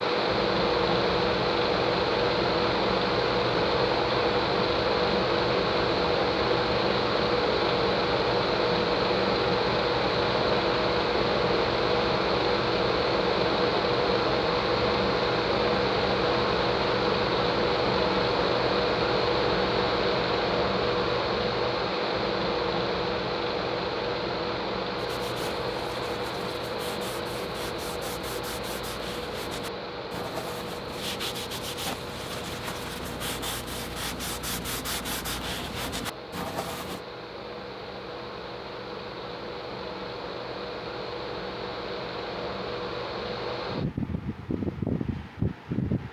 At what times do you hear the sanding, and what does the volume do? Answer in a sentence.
The sanding can be heard from 24.9 to 37.0 s, getting louder.